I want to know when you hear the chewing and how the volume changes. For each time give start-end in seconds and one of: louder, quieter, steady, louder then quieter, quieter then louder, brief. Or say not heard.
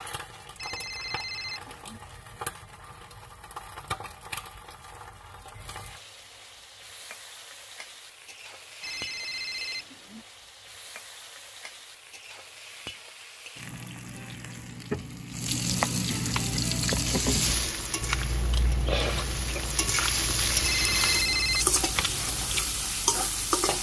16.1-22.9 louder then quieter.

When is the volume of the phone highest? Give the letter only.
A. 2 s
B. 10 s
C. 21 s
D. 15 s
C.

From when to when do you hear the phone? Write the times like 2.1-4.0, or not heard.
0.6-2.0, 8.8-10.2, 20.6-21.8.